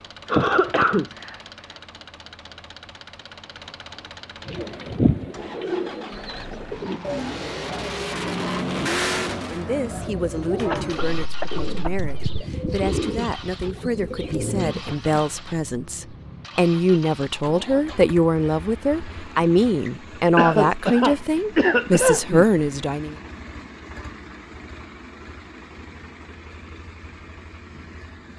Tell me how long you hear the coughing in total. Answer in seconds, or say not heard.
5 s.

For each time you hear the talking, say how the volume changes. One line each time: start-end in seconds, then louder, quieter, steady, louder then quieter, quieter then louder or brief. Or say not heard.
9.5-23.1 louder.